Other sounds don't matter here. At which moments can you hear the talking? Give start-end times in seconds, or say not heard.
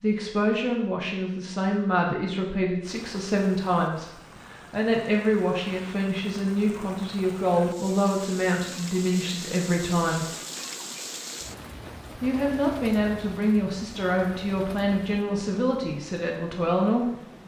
0.0-10.2, 12.2-17.1.